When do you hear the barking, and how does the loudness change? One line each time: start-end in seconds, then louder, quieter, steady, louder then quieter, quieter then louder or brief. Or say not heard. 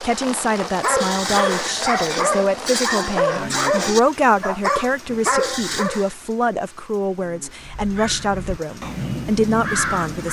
0.8-6.1 steady.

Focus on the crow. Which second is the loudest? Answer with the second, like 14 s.
10 s.